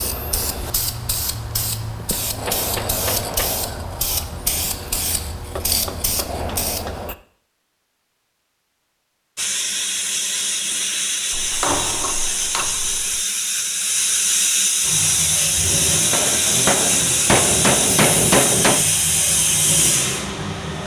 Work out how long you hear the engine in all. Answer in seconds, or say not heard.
6 s.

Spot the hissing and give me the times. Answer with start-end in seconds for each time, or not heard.
0.0-7.2, 9.3-20.8.